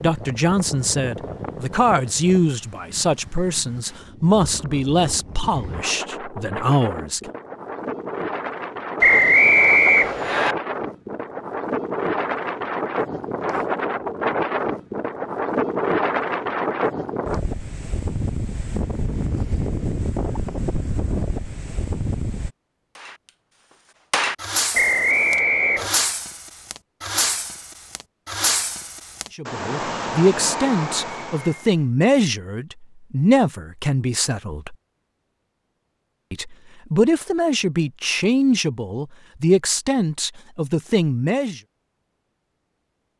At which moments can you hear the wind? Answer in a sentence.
The wind can be heard from 0.0 to 22.5 s.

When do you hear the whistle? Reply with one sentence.
The whistle can be heard from 9.0 to 10.6 s and from 24.7 to 25.9 s.